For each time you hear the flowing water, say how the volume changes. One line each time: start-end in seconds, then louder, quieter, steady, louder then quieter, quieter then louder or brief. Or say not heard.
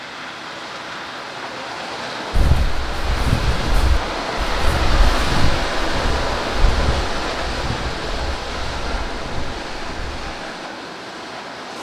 0.0-11.7 louder then quieter.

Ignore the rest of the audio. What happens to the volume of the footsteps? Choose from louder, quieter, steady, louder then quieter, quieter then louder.
quieter.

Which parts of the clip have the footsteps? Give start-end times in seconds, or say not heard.
2.3-10.4.